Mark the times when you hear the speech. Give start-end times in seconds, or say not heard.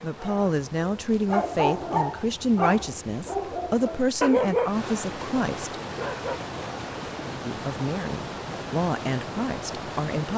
0.0-5.8, 7.4-10.3.